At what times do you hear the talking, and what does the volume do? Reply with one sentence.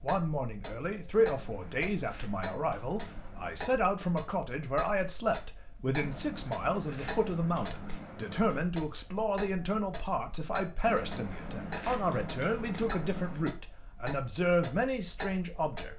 The talking can be heard from 0.0 to 15.9 s, at a steady volume.